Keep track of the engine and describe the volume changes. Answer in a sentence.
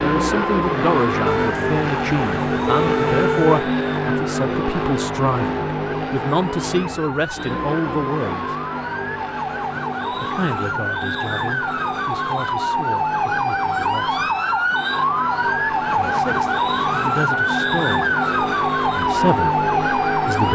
The loudness of the engine goes down, then up.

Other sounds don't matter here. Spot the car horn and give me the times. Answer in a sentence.
You can hear the car horn from 1.2 to 3.6 s.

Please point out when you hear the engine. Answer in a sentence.
The engine can be heard from 0.0 to 20.5 s.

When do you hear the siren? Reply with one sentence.
You can hear the siren from 0.0 to 20.5 s.